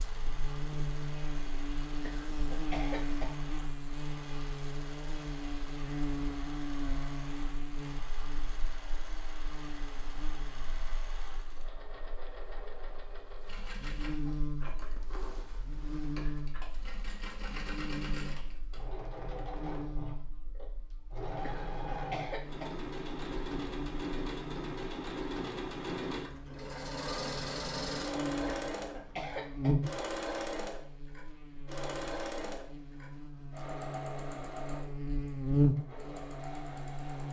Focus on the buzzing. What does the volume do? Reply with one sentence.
The volume of the buzzing goes down, then up.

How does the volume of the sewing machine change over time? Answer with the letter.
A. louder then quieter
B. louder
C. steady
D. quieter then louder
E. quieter
B.